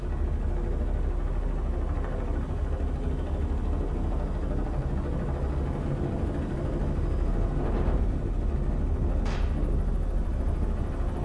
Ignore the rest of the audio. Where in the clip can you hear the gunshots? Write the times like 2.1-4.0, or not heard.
9.2-9.7.